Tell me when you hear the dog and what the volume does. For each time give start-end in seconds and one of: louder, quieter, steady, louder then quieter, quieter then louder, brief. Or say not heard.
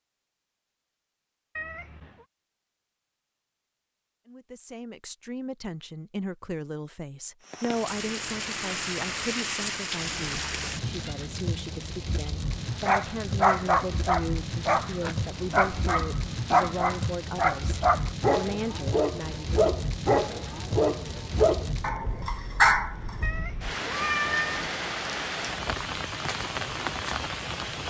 12.8-23.1 steady.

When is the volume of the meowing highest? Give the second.
24 s.